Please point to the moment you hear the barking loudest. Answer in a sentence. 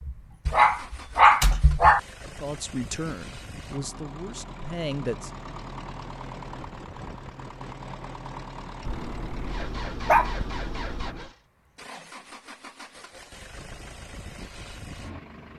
The volume of the barking peaks at 1 second.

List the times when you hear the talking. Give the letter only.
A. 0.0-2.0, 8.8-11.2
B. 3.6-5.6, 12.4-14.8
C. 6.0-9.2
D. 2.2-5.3
D.